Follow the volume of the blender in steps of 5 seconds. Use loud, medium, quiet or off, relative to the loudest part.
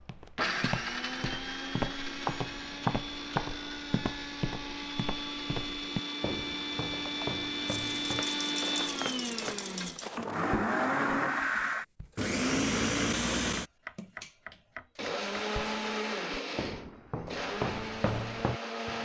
medium, medium, loud, medium.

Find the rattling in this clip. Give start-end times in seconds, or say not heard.
7.7-10.2.